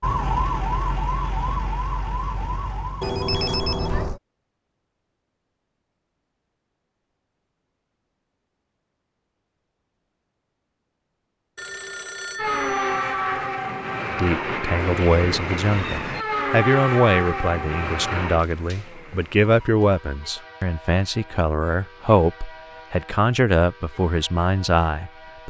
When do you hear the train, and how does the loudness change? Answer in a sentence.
The train can be heard from 12.3 to 25.4 s, getting quieter.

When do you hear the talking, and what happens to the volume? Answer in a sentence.
The talking can be heard from 14.1 to 25.4 s, at a steady volume.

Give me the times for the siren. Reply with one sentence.
You can hear the siren from 0.0 to 3.8 s.